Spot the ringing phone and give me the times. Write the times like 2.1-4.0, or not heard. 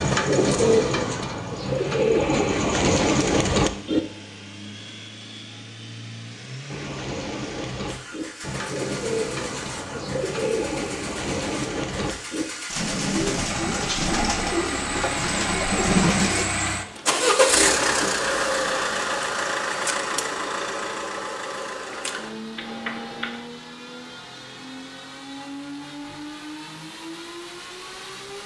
22.6-23.4.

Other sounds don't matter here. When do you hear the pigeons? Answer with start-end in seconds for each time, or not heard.
0.0-4.0, 6.7-16.4.